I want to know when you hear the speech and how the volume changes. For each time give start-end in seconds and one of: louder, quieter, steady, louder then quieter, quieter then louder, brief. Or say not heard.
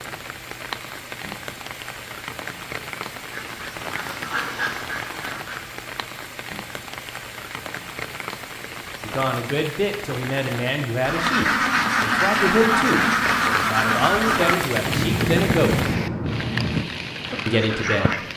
9.0-15.8 steady
17.4-18.1 brief.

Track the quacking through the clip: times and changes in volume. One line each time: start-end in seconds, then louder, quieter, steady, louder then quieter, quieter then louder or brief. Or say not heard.
3.2-5.8 brief
11.0-18.2 quieter.